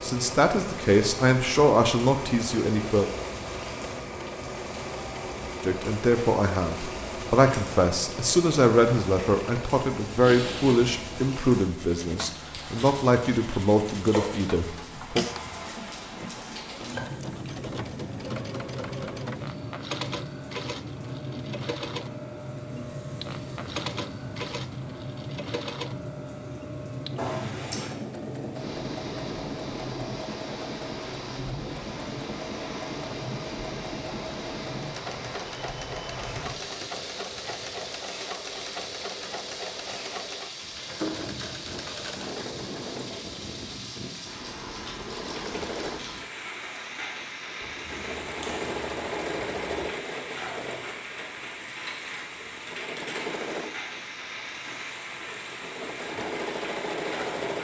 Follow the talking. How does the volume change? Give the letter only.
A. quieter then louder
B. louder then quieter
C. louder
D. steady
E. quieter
D.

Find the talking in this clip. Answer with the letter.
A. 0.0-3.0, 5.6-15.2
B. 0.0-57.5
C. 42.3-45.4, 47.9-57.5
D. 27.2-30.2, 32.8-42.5
A.